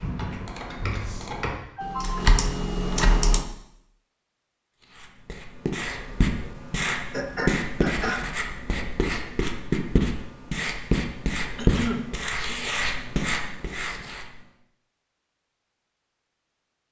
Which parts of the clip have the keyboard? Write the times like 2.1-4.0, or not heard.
0.0-3.5.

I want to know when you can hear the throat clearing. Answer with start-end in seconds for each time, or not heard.
0.9-2.2, 7.1-8.2, 11.6-12.6.